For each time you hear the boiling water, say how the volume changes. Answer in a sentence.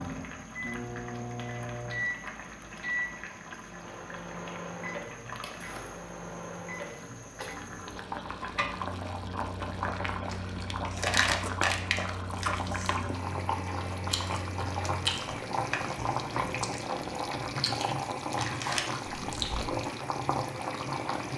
You can hear the boiling water from 0.0 to 21.3 s, getting louder.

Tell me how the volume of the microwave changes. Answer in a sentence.
The loudness of the microwave goes down.